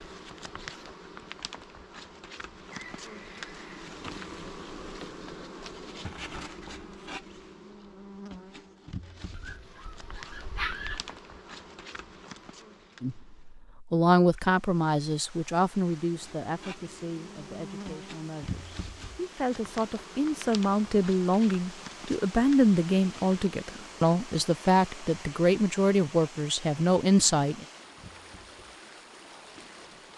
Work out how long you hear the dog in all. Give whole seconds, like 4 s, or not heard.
2 s.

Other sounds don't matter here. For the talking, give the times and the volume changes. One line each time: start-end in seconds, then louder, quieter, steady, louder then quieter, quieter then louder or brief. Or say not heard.
13.0-27.6 quieter then louder.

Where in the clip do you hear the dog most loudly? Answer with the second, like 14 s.
11 s.